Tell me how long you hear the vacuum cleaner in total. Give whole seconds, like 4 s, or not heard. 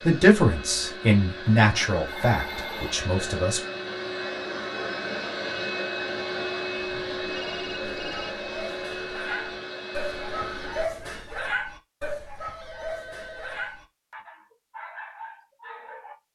11 s.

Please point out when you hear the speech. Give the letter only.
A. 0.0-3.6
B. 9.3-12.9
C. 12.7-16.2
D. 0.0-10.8
A.